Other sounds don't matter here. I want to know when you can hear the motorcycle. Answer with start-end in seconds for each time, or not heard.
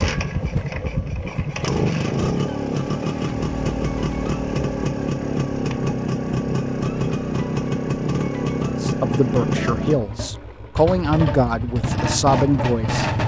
0.0-13.2.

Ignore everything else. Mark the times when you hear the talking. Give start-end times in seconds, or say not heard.
8.7-13.1.